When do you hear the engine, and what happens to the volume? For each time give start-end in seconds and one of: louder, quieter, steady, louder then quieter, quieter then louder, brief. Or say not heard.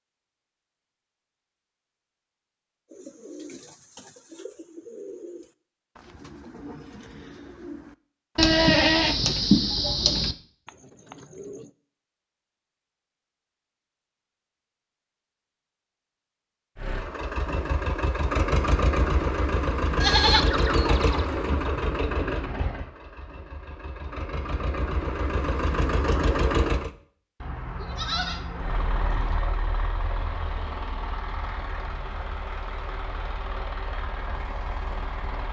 16.8-26.9 quieter then louder
28.6-35.4 steady.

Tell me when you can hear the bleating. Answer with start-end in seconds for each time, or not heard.
8.3-10.3, 20.0-21.2, 27.4-29.4.